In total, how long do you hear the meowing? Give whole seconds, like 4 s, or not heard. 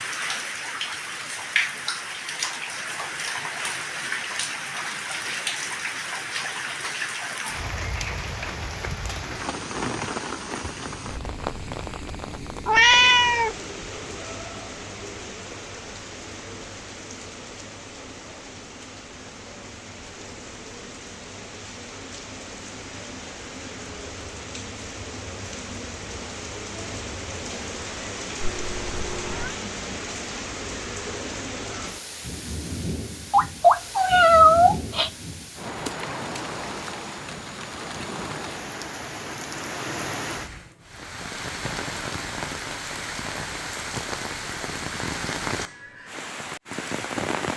4 s.